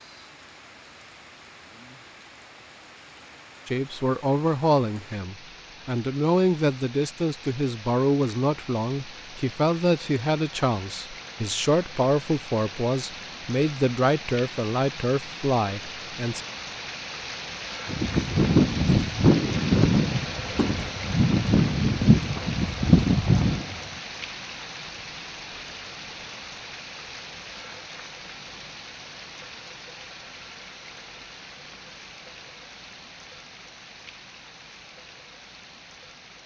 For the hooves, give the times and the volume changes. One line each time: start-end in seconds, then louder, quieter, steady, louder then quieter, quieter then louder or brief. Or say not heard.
17.9-23.8 quieter then louder.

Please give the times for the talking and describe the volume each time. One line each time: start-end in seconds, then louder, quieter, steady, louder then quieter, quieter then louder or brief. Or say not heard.
3.6-16.4 steady.